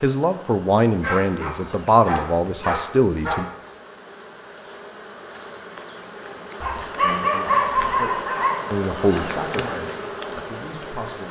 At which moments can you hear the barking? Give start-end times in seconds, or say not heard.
1.0-3.5, 6.6-8.6.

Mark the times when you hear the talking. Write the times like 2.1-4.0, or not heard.
0.0-3.5, 6.7-11.2.